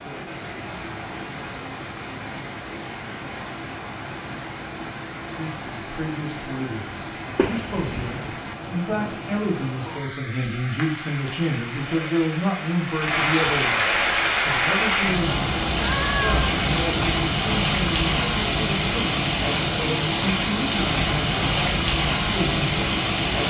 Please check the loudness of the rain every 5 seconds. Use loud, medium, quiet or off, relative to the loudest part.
quiet, quiet, loud, loud, loud.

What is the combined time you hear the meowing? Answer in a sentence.
The meowing can be heard for 2 seconds in total.